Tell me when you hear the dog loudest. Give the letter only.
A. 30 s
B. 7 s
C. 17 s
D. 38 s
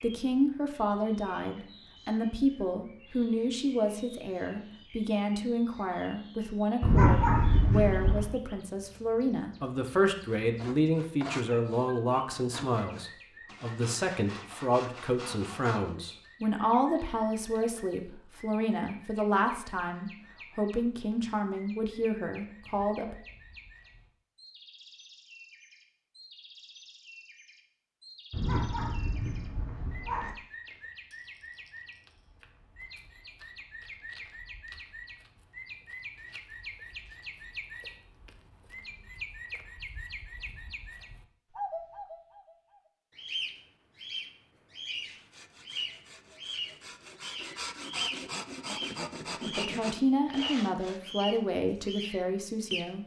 B.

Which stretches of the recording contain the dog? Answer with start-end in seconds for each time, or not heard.
6.8-8.3, 28.3-30.3.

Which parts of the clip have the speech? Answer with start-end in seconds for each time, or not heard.
0.0-23.1, 49.5-53.0.